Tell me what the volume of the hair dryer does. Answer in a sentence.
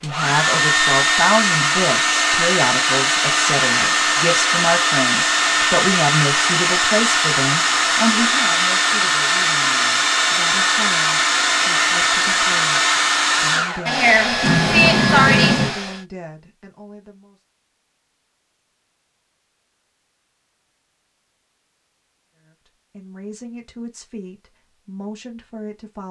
The loudness of the hair dryer stays about the same.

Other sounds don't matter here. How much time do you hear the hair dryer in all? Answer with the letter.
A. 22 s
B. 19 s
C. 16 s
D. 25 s
C.